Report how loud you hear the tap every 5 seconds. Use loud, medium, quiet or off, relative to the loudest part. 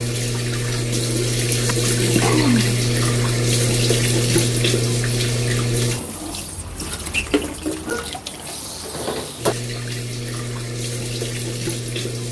loud, medium, medium.